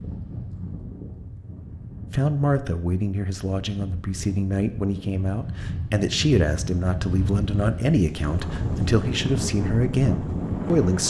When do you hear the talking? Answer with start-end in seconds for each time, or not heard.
2.1-11.0.